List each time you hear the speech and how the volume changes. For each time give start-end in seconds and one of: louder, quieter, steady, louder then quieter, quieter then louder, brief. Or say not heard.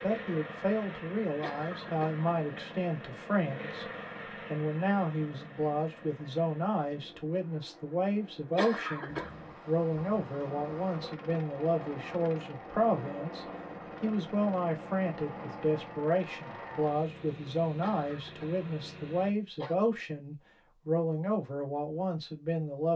0.0-22.9 steady.